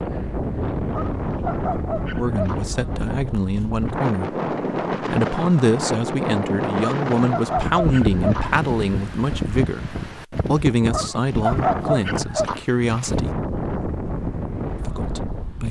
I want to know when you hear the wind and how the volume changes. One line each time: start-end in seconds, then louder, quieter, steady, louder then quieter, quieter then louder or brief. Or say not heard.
0.0-15.6 steady.